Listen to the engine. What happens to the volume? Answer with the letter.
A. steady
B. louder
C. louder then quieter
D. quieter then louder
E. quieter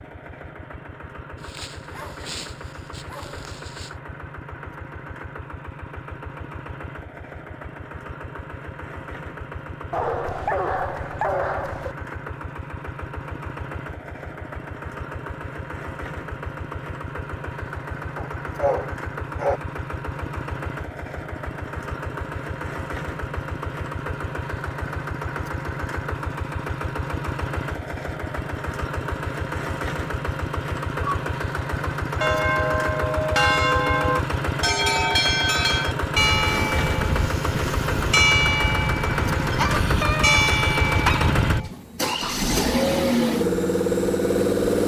B.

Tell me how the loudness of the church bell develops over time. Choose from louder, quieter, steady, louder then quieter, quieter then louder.
steady.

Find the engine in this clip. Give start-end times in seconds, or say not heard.
0.0-44.8.